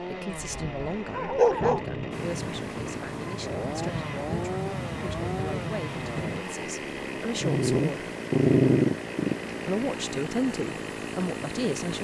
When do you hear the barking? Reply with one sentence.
The barking can be heard from 0.3 to 1.9 s and from 7.4 to 9.3 s.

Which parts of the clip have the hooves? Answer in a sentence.
You can't hear the hooves here.